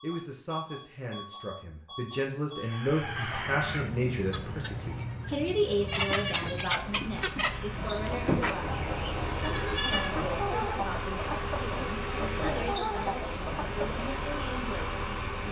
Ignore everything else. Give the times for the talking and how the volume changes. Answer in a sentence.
You can hear the talking from 0.0 to 8.7 s, getting louder then quieter; and from 9.3 to 15.4 s, at a steady volume.